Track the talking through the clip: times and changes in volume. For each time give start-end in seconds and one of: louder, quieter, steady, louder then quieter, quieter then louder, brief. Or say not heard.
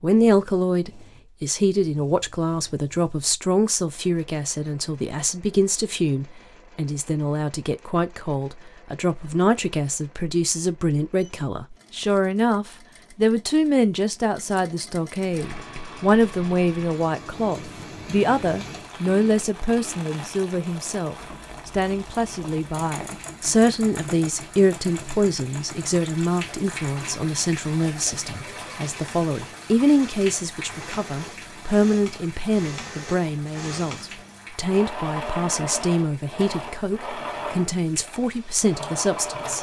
0.0-39.5 steady.